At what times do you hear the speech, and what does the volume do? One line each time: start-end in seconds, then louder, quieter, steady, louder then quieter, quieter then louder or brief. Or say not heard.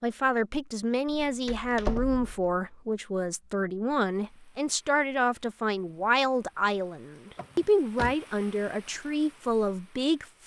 0.0-10.4 steady.